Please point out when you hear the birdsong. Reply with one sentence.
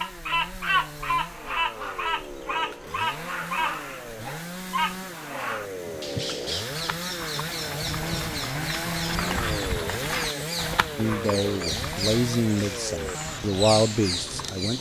You can hear the birdsong from 0.0 to 14.7 s.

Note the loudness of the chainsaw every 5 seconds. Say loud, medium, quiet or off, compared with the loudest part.
medium, loud, loud.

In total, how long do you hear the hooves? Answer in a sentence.
The hooves can be heard for 9 seconds in total.